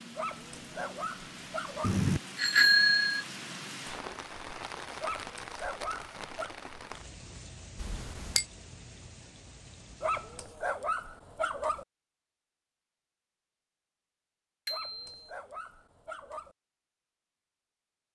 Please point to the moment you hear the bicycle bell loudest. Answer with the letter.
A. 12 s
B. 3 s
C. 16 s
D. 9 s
B.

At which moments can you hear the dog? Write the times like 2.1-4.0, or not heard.
0.1-2.0, 5.0-6.5, 10.0-11.8, 14.7-16.6.